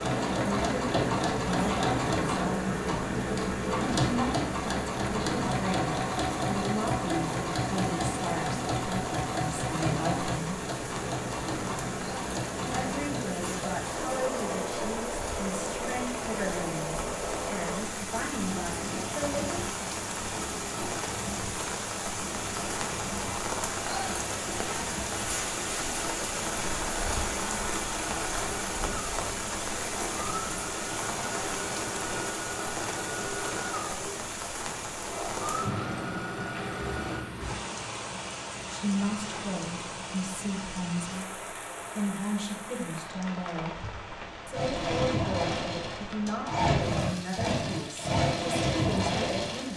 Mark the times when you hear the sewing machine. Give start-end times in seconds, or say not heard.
0.0-37.2, 44.5-49.7.